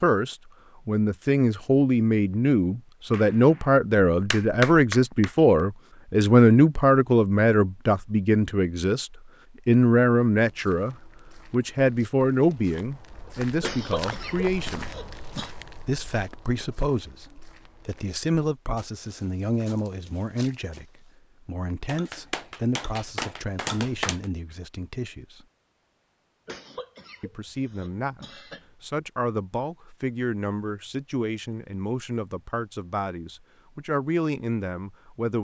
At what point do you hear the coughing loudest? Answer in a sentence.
The volume of the coughing peaks at 14 seconds.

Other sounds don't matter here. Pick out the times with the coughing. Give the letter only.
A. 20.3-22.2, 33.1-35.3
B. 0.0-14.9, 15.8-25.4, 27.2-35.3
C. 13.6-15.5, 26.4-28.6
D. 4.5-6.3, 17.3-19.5
C.